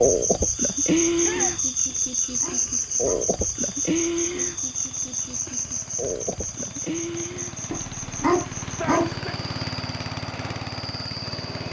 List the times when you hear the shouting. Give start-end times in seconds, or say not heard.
1.2-1.6, 8.7-9.3.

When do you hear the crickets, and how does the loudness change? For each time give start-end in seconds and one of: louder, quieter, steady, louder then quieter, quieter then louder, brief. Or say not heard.
0.0-11.6 quieter.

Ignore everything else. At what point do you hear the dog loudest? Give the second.
8 s.